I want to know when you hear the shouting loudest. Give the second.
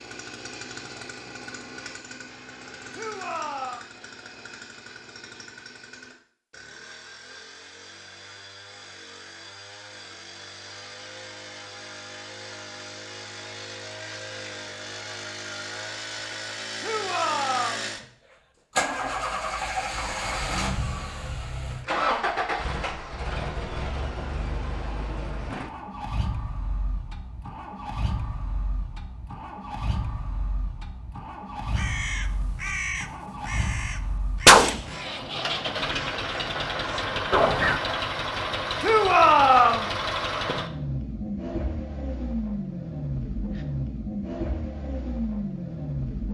39 s.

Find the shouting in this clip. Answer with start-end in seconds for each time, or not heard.
2.9-3.9, 16.8-17.9, 38.8-39.9.